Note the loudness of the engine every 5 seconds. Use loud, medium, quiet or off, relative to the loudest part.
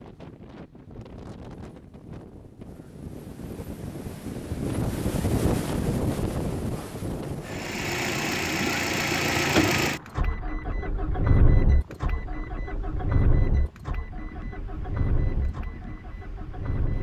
off, loud, medium, medium.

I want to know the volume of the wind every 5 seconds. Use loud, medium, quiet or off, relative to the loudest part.
medium, loud, quiet, quiet.